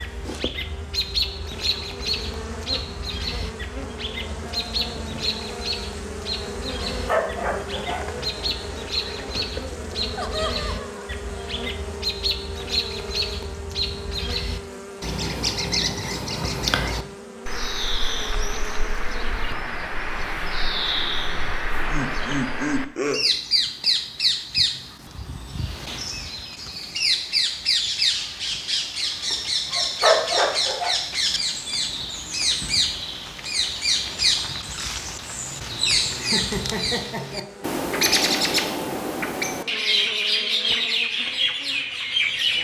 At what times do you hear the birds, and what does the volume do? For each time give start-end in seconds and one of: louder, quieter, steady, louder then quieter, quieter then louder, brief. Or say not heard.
0.0-42.5 louder.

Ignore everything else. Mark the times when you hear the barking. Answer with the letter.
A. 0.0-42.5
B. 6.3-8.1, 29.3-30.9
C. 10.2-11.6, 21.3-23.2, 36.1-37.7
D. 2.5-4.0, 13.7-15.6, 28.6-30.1
B.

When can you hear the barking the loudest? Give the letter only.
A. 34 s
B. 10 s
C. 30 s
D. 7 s
C.